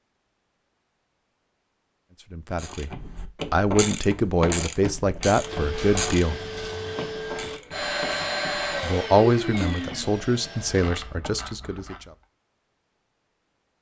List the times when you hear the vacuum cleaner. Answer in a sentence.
The vacuum cleaner can be heard from 5.3 to 11.2 s.